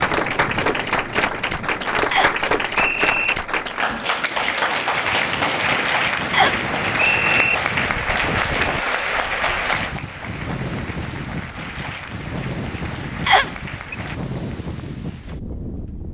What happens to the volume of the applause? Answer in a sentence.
The volume of the applause goes down.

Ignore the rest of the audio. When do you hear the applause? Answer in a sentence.
You can hear the applause from 0.0 to 14.2 s.